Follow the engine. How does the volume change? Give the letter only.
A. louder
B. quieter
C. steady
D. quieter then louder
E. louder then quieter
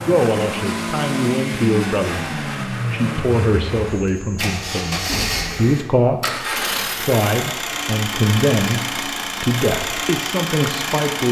C.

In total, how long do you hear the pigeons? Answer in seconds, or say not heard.
not heard.